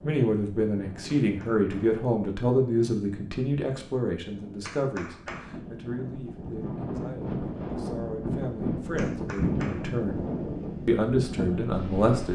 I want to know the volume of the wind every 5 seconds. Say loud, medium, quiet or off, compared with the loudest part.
quiet, loud, loud.